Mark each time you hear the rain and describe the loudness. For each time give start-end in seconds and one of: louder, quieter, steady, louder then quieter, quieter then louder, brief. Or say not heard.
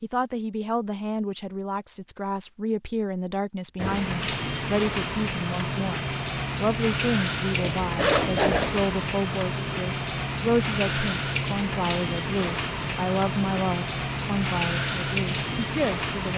3.8-16.3 steady.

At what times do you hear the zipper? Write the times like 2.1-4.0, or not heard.
7.5-8.9.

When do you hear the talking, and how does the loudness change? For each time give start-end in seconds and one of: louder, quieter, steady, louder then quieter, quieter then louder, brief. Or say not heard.
0.0-16.3 steady.